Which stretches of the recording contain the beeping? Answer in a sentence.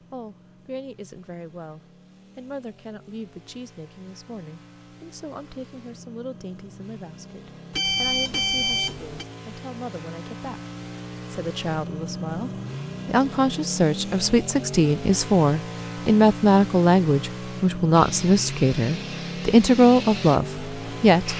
The beeping can be heard from 7.7 to 9.2 s.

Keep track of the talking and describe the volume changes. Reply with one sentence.
The volume of the talking goes up.